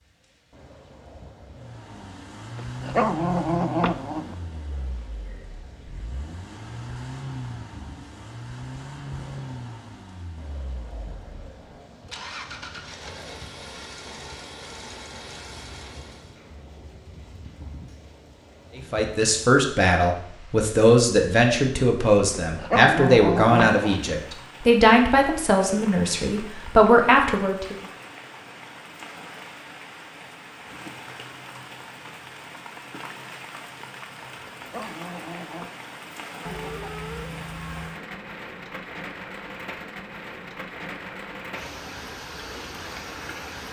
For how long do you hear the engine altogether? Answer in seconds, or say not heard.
15 s.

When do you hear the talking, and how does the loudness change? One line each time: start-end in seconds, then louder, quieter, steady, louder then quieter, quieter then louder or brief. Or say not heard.
18.8-27.8 steady.